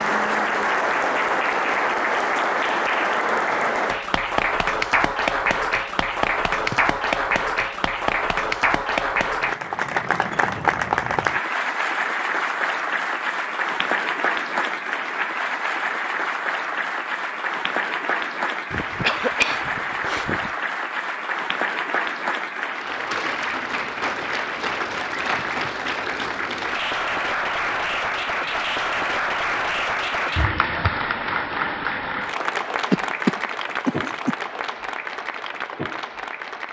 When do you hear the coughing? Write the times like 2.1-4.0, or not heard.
6.5-7.0, 18.7-20.5, 32.9-34.4.